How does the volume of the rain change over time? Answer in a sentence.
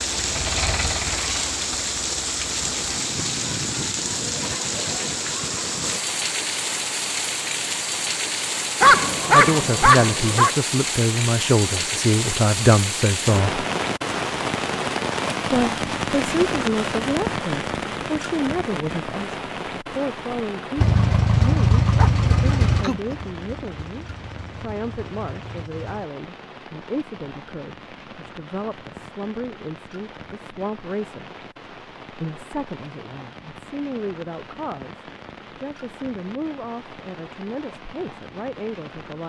The volume of the rain goes down.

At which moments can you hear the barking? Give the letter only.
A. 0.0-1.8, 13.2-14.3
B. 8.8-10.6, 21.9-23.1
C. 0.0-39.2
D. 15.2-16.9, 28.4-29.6
B.